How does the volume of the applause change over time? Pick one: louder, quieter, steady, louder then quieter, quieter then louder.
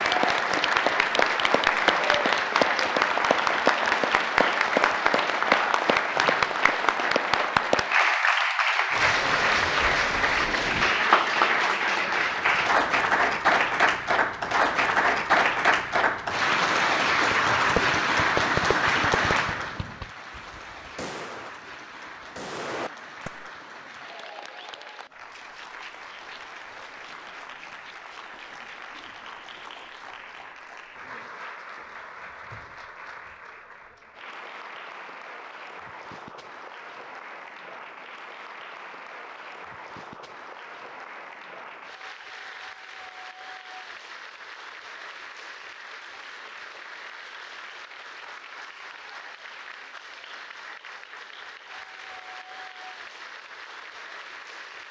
quieter.